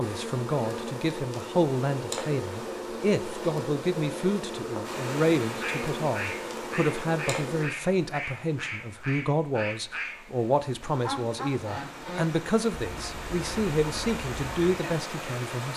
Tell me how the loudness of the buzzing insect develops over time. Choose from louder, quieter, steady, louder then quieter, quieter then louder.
steady.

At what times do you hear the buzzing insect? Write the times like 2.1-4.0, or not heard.
0.0-7.7.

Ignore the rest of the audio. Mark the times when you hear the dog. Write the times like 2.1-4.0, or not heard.
not heard.